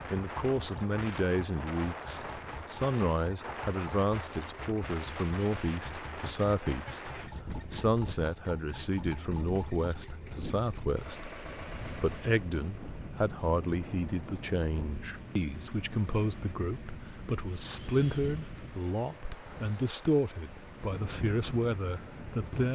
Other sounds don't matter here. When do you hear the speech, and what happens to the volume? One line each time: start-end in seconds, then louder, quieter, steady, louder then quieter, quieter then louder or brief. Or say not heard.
0.1-22.7 steady.